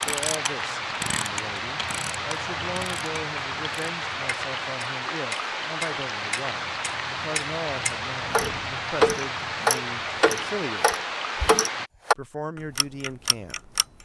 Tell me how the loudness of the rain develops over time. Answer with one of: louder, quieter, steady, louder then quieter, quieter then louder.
steady.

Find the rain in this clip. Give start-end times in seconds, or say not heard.
0.0-11.9.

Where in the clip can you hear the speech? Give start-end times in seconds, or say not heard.
0.1-11.1, 12.2-13.8.